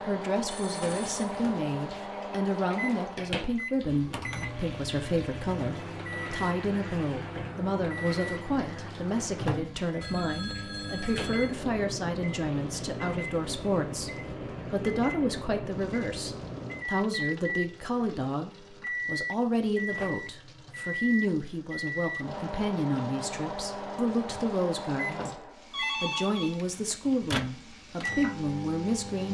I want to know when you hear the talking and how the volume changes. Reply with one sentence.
The talking can be heard from 0.0 to 29.2 s, at a steady volume.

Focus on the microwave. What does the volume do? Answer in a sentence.
The loudness of the microwave stays about the same.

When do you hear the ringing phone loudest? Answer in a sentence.
The loudest moment of the ringing phone is at 26 seconds.